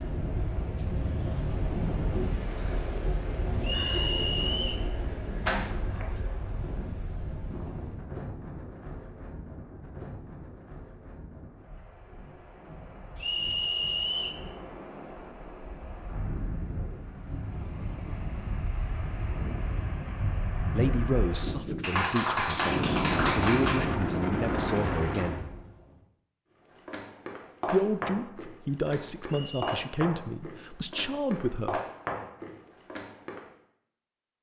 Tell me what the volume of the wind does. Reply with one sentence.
The loudness of the wind goes down, then up.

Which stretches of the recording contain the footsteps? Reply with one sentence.
You can hear the footsteps from 26.7 to 33.5 s.